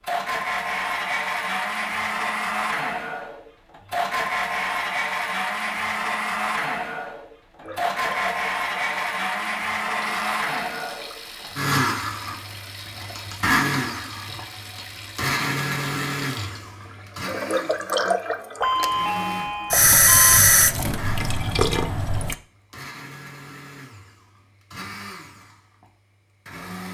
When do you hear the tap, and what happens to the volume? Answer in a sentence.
The tap can be heard from 7.6 to 22.4 s, getting louder.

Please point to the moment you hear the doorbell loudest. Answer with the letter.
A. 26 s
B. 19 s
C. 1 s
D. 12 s
B.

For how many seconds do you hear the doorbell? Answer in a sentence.
The doorbell can be heard for 2 seconds in total.